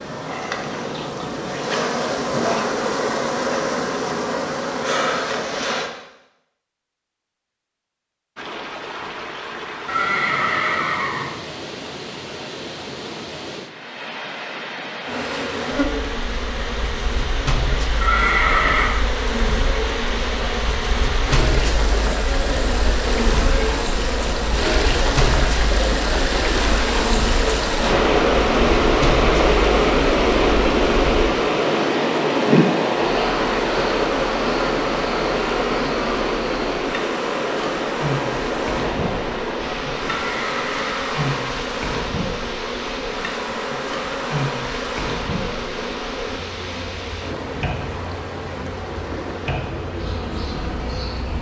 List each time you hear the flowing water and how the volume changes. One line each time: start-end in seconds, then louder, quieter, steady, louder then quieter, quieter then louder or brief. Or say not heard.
8.3-51.3 louder then quieter.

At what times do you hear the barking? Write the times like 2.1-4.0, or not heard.
not heard.